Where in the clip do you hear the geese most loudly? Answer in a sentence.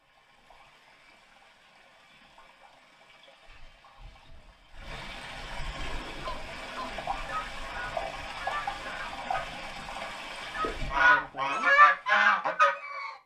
The loudest moment of the geese is at 12 seconds.